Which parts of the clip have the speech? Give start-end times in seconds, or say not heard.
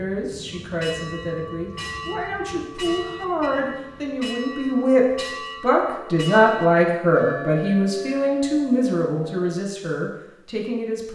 0.0-11.0.